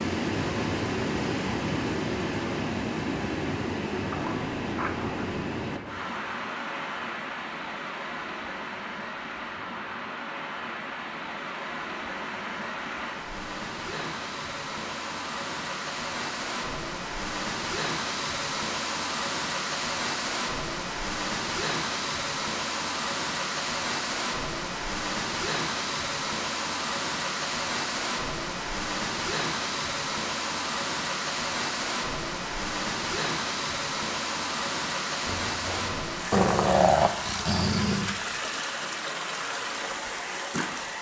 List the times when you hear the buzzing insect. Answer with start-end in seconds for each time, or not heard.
not heard.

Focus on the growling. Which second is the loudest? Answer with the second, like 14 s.
37 s.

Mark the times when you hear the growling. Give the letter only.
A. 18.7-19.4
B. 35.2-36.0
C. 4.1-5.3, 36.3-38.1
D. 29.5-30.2
C.